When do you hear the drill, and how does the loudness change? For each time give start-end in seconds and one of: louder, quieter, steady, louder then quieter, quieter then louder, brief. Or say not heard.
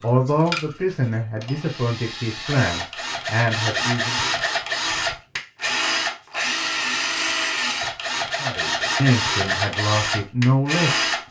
0.0-11.2 louder.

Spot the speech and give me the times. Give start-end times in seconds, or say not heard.
0.0-4.2, 8.4-11.2.